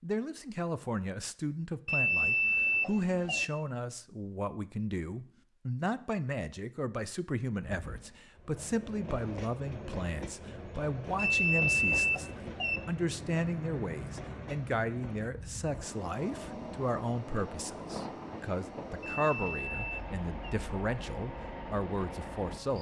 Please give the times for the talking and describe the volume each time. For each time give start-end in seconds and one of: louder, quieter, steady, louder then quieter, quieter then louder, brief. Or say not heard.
0.0-22.7 steady.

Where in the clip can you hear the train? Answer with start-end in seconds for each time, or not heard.
7.6-22.7.